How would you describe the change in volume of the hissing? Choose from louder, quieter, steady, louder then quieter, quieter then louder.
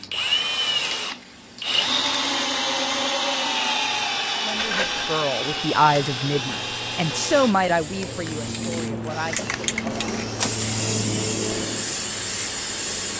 louder.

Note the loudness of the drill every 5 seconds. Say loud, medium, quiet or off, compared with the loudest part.
loud, medium, quiet.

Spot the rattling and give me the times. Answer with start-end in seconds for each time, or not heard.
4.5-5.2.